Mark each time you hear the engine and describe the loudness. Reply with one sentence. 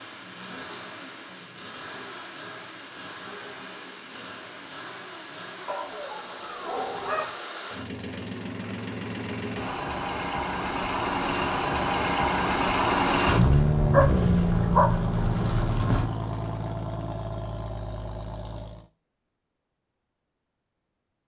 The engine can be heard from 0.0 to 18.9 s, getting louder then quieter.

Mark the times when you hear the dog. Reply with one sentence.
You can hear the dog from 5.7 to 7.3 s and from 13.3 to 16.1 s.